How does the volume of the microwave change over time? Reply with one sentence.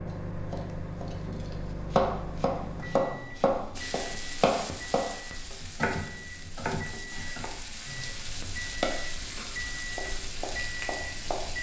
The loudness of the microwave goes down, then up.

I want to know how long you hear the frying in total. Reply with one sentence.
The frying can be heard for 8 seconds in total.